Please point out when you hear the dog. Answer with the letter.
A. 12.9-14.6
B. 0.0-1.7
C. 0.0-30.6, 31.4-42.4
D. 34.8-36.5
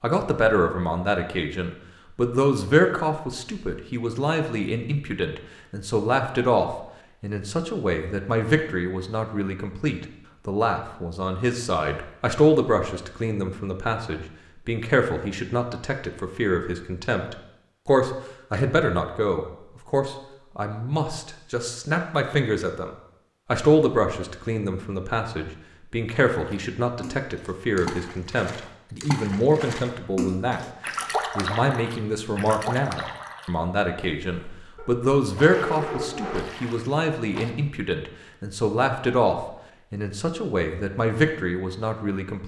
D.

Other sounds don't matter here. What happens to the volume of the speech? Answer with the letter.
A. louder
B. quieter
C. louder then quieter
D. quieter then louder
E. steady
E.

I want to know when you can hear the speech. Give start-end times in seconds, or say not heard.
0.0-30.6, 31.4-42.4.